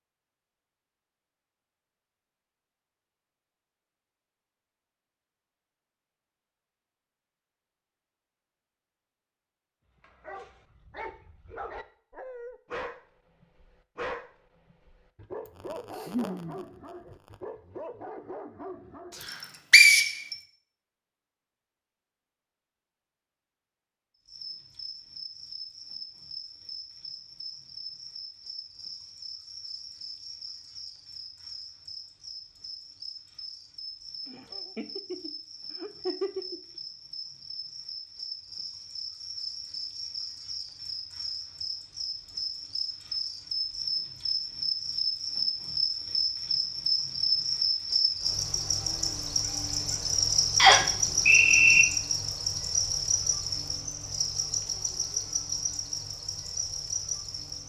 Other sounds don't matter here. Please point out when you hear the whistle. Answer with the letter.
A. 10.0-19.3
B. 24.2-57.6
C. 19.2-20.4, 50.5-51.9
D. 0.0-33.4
C.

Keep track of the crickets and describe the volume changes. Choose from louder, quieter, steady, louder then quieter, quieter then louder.
louder.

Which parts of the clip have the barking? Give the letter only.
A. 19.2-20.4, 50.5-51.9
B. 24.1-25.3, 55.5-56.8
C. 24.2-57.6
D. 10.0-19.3
D.